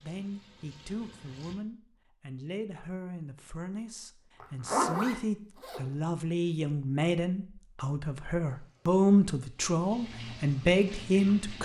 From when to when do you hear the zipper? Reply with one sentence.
You can hear the zipper from 4.4 to 5.8 s.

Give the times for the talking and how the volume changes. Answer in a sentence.
The talking can be heard from 0.0 to 11.6 s, getting louder.